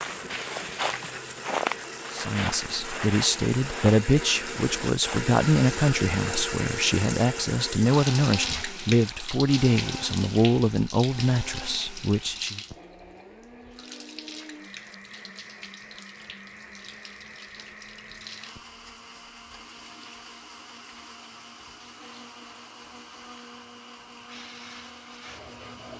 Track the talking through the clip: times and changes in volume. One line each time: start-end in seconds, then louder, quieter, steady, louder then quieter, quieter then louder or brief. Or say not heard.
2.1-12.6 steady.